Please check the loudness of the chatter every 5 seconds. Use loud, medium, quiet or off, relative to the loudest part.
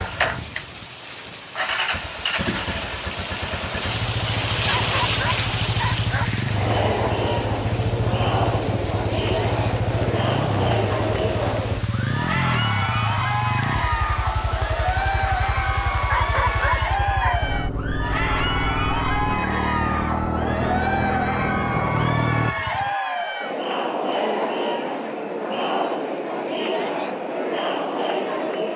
off, loud, loud, loud, loud, loud.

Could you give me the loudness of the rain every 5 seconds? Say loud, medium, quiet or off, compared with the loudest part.
loud, loud, medium, medium, off, off.